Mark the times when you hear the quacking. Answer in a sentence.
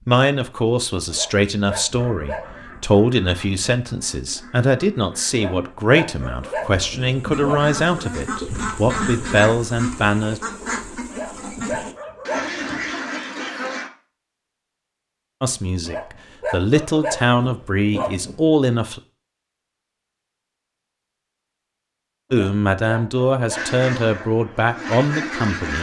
You can hear the quacking from 1.9 to 13.9 s and from 23.5 to 25.7 s.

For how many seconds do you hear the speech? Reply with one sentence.
You can hear the speech for 17 seconds altogether.